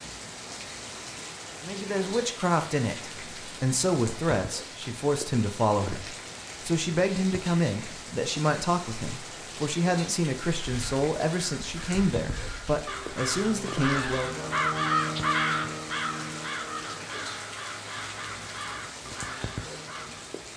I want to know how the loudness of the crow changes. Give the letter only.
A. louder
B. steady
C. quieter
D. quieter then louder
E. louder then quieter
E.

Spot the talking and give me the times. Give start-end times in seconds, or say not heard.
1.6-14.4.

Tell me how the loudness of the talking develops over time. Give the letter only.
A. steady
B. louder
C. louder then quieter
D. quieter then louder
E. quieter
A.